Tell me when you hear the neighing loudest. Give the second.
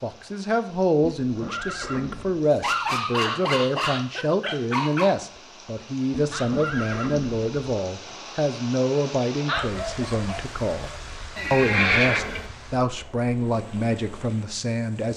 12 s.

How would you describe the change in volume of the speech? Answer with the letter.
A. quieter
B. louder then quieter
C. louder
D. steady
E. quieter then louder
D.